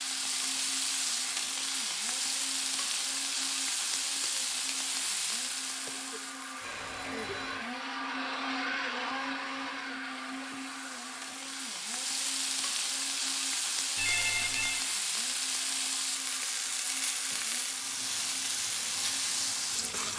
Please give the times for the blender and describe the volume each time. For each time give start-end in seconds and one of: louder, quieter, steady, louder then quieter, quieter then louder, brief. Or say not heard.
0.0-20.1 louder then quieter.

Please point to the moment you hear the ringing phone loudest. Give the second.
14 s.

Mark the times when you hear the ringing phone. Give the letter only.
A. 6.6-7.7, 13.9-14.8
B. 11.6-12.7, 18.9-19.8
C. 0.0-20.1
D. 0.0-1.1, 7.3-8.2
A.